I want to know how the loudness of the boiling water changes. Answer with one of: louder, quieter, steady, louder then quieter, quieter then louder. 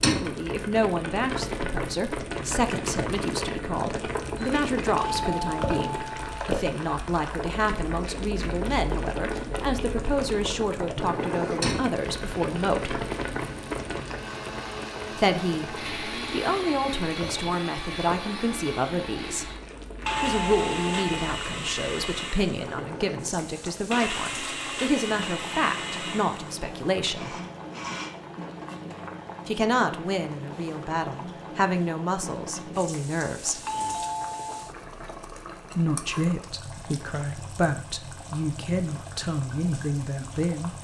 quieter.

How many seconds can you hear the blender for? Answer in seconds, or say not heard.
16 s.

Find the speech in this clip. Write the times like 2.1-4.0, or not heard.
0.0-13.0, 15.1-19.5, 20.2-27.4, 29.4-33.6, 35.8-40.7.